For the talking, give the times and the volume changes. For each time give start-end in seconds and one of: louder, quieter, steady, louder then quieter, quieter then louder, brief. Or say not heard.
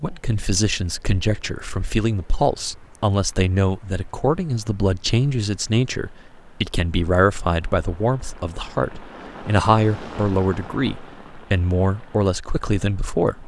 0.0-13.4 steady.